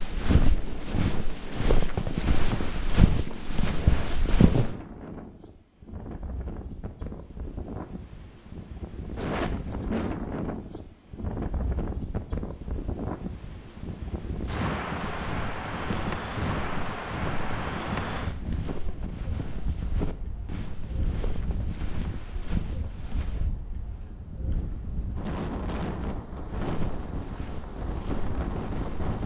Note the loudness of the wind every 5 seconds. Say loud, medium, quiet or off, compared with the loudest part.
medium, loud, loud, loud, medium, loud.